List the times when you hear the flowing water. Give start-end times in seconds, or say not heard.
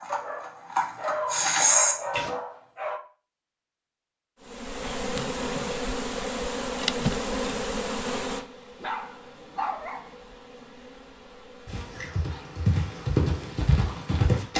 not heard.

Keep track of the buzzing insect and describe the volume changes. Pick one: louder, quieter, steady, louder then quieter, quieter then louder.
quieter.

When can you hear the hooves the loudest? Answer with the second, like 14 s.
2 s.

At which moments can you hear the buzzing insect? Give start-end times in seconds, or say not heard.
4.4-14.5.